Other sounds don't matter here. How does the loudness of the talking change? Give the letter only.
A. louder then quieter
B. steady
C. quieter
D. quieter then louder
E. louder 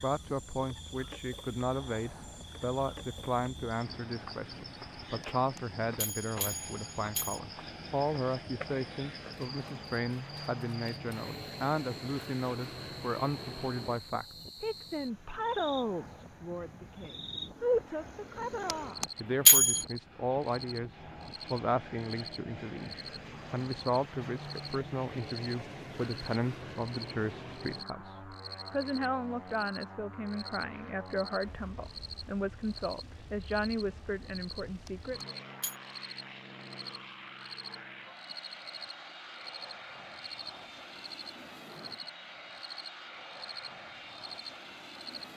B.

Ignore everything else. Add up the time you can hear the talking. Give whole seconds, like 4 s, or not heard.
35 s.